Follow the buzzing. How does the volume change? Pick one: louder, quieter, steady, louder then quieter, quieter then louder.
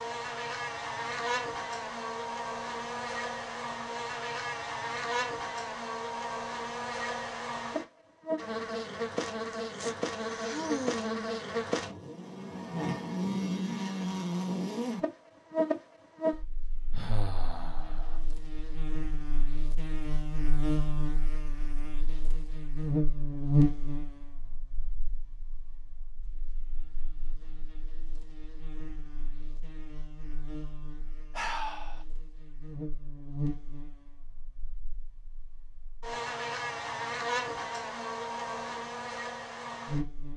quieter then louder.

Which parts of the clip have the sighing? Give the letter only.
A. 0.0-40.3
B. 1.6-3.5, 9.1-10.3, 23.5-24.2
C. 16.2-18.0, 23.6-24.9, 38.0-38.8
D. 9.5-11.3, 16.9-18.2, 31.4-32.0
D.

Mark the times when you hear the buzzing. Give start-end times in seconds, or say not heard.
0.0-40.3.